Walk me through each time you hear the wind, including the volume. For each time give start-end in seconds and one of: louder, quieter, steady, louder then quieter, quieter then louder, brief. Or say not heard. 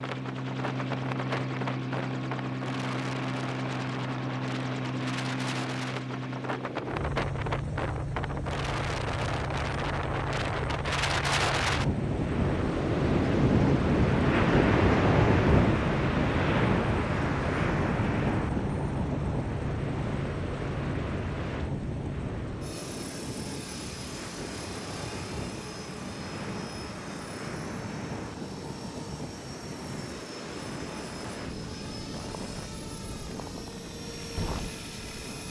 0.0-35.4 louder then quieter.